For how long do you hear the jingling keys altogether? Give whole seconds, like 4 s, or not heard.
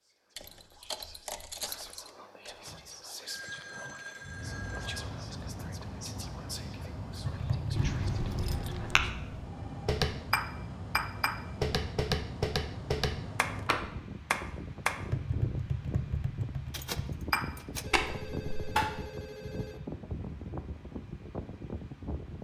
4 s.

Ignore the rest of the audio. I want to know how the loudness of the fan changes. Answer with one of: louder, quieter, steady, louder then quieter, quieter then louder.
steady.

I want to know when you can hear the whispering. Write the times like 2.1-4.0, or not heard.
0.0-9.1.